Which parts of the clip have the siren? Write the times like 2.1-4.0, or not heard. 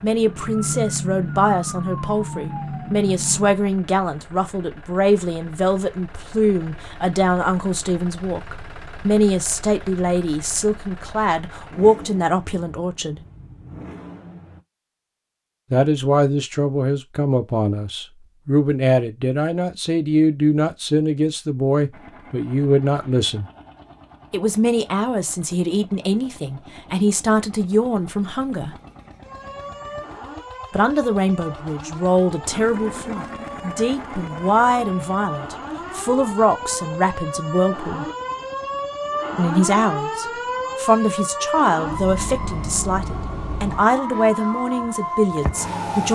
0.0-3.6, 29.2-46.1.